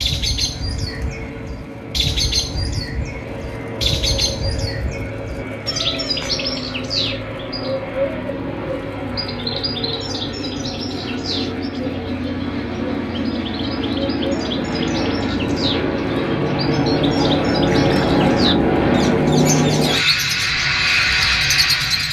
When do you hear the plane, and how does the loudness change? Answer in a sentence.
The plane can be heard from 0.0 to 22.0 s, getting louder.